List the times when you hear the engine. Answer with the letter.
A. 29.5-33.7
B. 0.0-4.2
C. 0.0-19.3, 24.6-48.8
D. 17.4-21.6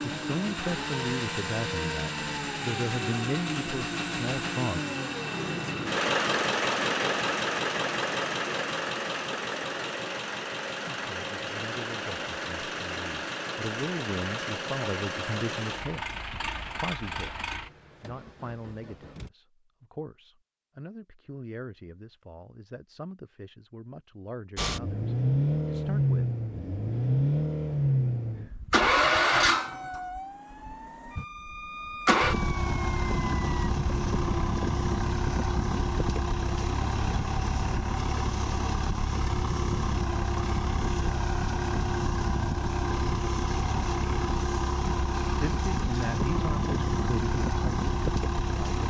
C.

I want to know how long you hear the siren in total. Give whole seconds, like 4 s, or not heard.
4 s.